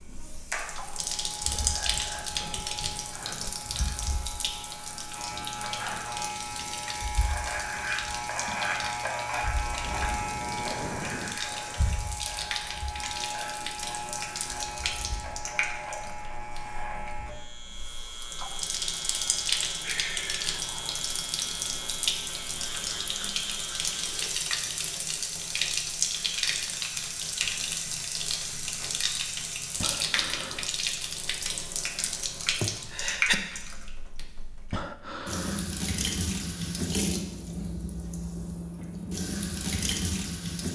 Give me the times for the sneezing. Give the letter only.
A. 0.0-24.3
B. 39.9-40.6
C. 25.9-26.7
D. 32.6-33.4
D.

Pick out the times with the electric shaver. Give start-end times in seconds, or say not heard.
0.0-24.3.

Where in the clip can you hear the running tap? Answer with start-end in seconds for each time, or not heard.
0.0-40.6.